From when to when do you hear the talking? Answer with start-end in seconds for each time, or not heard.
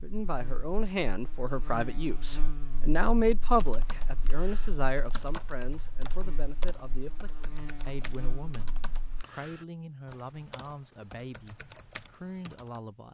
0.0-13.0.